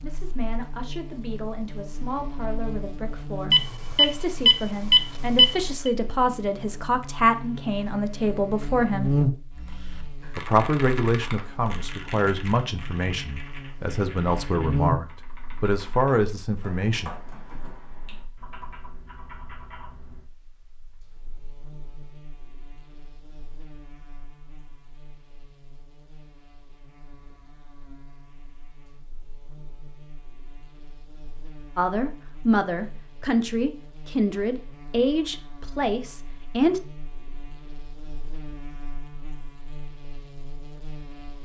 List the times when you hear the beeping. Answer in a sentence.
You can hear the beeping from 3.5 to 5.9 s.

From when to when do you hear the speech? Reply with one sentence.
You can hear the speech from 0.0 to 9.1 s, from 10.3 to 17.1 s and from 31.8 to 36.8 s.